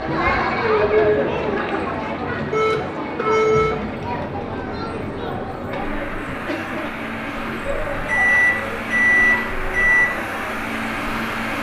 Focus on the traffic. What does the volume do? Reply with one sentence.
The volume of the traffic goes up.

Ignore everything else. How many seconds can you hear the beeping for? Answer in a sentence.
You can hear the beeping for 3 seconds altogether.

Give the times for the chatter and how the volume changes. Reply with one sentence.
You can hear the chatter from 0.0 to 11.2 s, getting quieter.